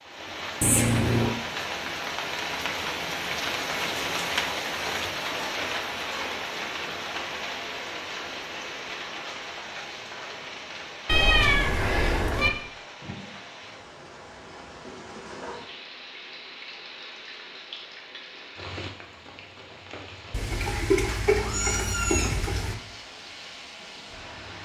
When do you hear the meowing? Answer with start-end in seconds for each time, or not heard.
0.6-1.4, 11.1-12.5, 20.3-22.8.